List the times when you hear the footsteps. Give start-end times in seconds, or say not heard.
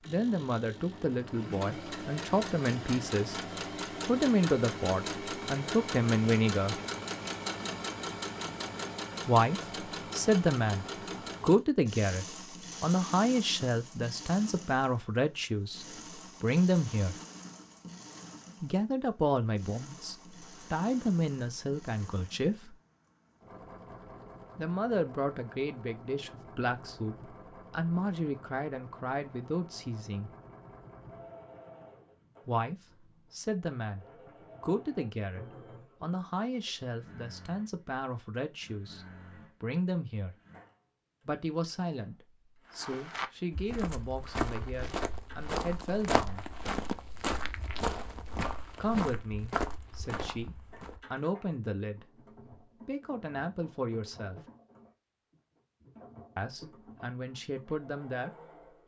42.6-51.0.